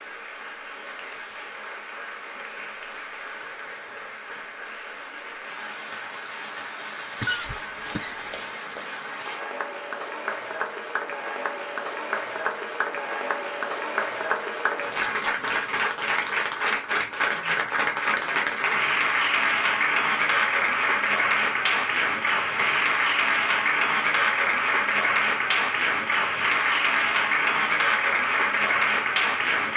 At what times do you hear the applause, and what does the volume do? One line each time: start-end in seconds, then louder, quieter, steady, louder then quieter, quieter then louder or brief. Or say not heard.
0.0-29.7 louder.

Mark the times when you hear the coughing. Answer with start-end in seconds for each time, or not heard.
7.2-8.5.